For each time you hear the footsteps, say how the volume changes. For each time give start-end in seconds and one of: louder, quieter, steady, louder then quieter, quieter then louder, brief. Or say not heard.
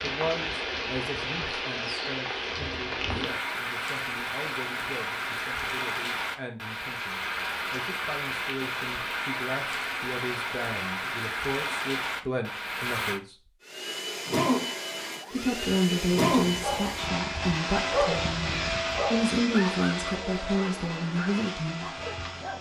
not heard.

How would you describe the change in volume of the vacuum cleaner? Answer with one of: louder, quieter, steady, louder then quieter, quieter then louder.
quieter.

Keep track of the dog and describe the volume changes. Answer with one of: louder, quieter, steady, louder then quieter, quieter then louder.
louder then quieter.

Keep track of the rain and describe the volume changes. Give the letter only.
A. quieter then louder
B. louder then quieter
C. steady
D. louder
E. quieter
C.